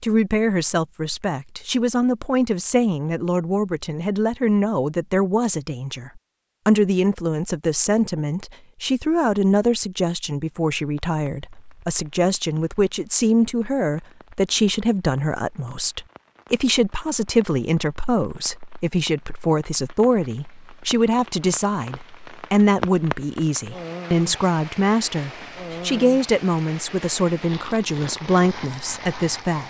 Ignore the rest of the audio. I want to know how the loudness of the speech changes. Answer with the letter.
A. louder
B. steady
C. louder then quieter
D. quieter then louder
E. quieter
B.